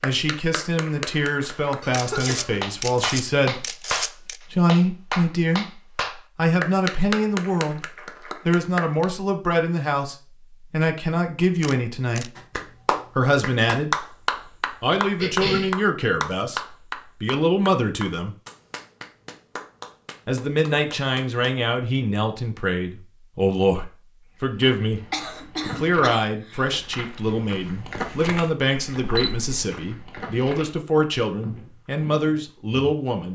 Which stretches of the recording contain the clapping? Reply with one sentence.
The clapping can be heard from 0.0 to 2.0 s, from 2.6 to 9.1 s and from 12.3 to 21.6 s.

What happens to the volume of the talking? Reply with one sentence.
The volume of the talking stays about the same.